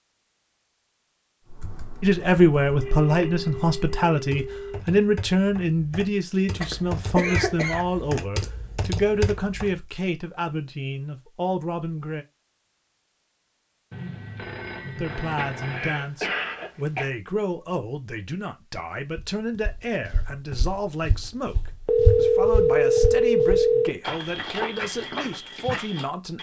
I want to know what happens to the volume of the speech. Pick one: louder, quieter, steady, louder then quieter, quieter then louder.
quieter.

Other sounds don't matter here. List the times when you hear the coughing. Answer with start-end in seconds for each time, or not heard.
6.6-8.2, 15.2-17.1.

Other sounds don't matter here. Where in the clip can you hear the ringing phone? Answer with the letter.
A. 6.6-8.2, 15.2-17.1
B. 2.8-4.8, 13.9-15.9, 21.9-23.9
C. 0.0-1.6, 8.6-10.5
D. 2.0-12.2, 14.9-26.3
B.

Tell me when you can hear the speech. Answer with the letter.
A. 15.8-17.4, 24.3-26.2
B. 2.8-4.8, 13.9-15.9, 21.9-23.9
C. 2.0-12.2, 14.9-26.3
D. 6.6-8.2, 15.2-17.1
C.